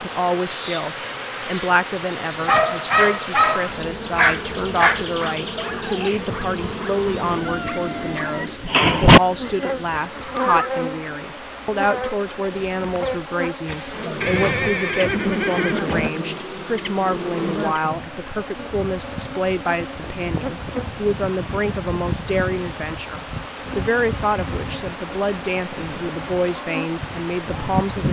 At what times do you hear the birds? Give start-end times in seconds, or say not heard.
not heard.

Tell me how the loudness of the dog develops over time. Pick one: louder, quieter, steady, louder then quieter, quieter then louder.
quieter then louder.